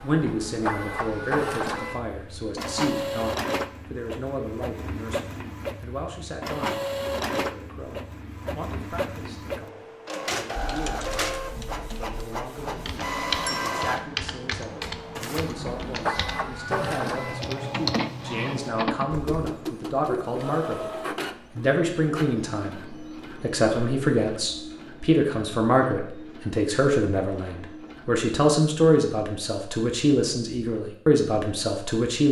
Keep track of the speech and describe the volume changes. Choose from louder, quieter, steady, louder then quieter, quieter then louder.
quieter then louder.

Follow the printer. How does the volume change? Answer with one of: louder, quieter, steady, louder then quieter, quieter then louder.
quieter.